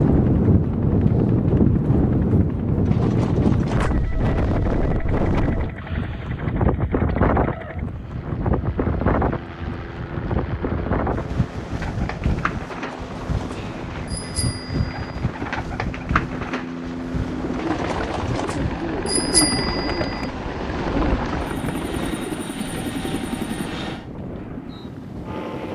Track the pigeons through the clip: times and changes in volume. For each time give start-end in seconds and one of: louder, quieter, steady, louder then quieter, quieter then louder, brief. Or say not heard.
11.6-22.4 louder.